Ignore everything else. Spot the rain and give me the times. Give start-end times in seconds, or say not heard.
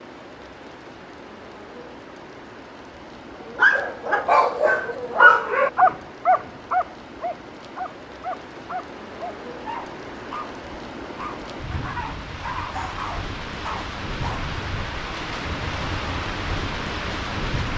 0.0-17.7.